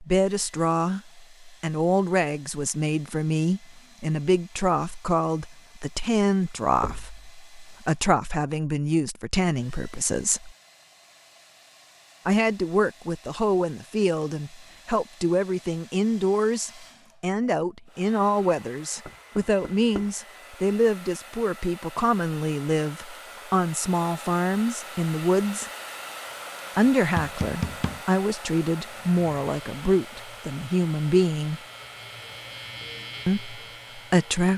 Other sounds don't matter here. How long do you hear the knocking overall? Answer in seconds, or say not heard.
2 s.